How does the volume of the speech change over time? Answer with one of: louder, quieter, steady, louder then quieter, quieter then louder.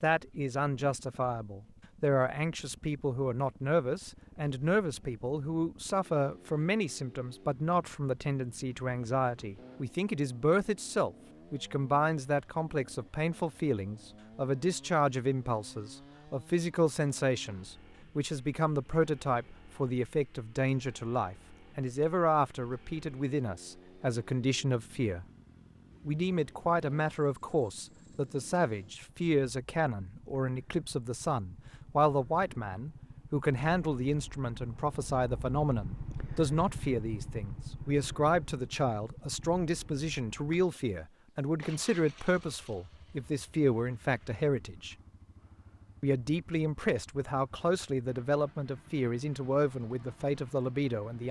steady.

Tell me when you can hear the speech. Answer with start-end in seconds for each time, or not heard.
0.0-25.2, 26.1-45.0, 46.0-51.2.